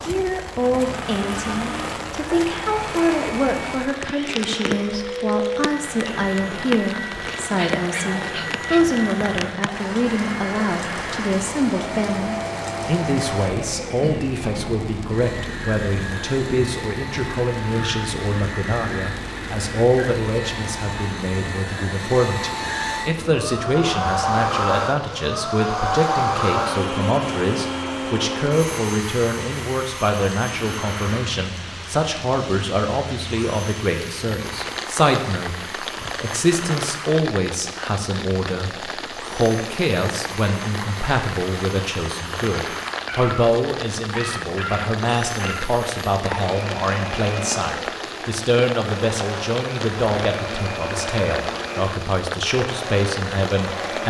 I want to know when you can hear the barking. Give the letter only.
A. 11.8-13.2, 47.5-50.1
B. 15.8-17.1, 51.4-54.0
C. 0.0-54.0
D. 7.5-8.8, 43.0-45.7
D.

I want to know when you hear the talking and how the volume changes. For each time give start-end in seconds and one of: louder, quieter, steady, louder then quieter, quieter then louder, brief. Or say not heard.
0.0-54.0 steady.